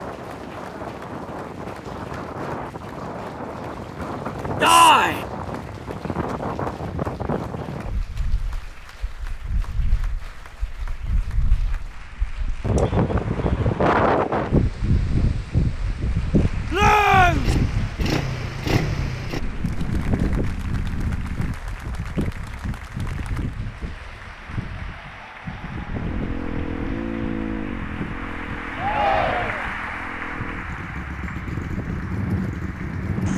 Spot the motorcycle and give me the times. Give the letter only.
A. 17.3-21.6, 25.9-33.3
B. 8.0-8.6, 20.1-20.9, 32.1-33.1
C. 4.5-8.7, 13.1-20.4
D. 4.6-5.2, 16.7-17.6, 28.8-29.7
A.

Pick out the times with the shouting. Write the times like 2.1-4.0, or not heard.
4.6-5.2, 16.7-17.6, 28.8-29.7.